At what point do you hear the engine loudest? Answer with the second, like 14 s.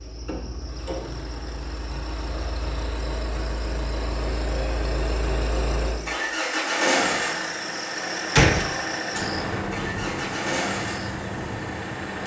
7 s.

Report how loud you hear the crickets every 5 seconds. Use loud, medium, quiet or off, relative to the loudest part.
quiet, loud, loud.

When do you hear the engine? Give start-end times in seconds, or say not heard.
0.0-12.2.